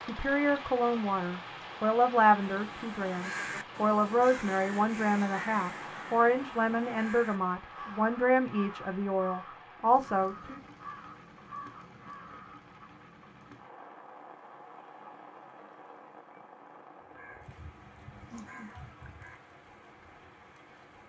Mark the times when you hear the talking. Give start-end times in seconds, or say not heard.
0.0-10.6.